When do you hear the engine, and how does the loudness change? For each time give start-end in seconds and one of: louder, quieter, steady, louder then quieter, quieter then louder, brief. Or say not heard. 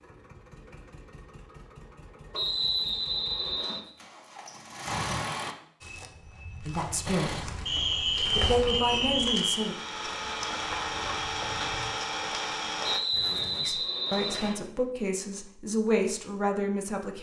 0.0-5.5 louder
7.0-13.0 louder.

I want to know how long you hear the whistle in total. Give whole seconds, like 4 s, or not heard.
5 s.